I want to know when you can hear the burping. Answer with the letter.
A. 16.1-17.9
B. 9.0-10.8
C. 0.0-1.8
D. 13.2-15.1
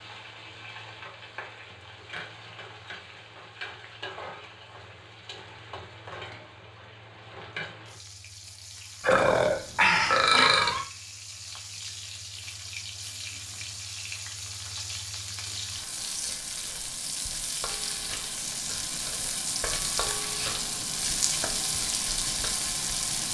B.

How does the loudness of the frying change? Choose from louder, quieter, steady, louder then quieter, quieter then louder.
louder.